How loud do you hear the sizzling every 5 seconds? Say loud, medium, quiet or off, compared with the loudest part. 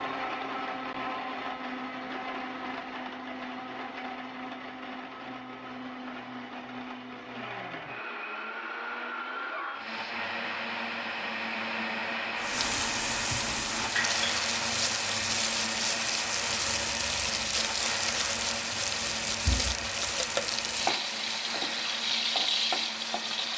off, off, loud, loud, loud.